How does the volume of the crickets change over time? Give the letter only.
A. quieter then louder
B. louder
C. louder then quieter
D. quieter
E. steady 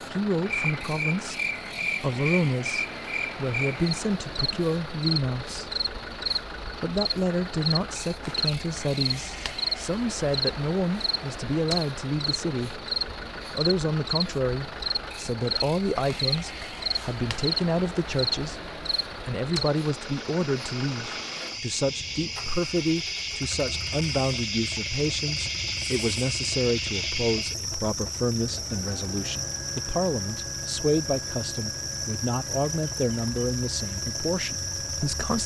E.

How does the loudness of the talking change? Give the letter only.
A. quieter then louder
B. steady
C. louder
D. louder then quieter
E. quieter
B.